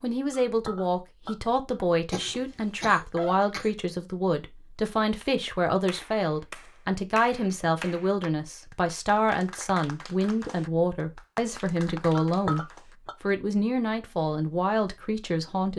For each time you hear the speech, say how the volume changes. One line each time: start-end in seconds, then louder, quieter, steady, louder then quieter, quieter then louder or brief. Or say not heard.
0.0-15.7 steady.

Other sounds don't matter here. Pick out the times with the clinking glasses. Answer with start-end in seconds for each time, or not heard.
0.3-1.6, 12.2-13.2.